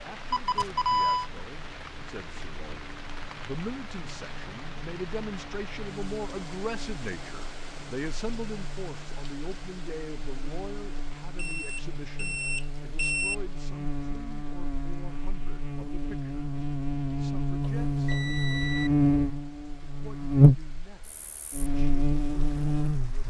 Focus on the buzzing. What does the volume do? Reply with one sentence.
The volume of the buzzing goes up.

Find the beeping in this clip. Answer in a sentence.
You can hear the beeping from 0.3 to 1.3 s, from 11.3 to 13.3 s and from 17.8 to 18.9 s.